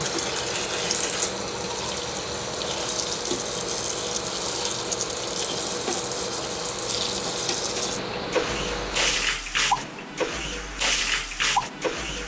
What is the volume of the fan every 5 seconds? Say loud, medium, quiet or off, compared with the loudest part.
loud, loud, off.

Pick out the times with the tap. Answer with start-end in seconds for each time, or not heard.
0.0-12.2.